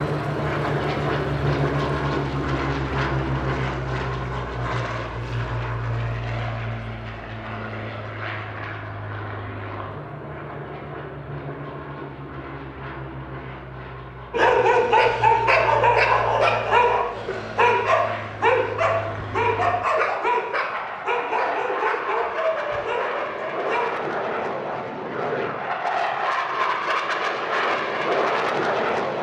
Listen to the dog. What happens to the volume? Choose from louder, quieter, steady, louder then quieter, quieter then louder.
quieter.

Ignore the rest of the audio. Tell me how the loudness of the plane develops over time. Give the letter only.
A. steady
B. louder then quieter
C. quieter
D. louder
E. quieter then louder
E.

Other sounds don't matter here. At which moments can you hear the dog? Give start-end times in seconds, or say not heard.
14.3-24.1.